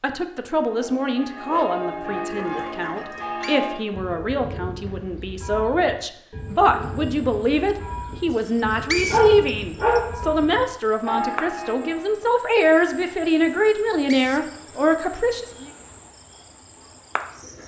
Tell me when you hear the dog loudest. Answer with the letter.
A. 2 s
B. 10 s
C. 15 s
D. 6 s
B.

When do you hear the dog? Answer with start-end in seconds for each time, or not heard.
1.4-3.2, 9.1-10.2.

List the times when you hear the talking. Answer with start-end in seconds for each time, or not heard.
0.0-15.7.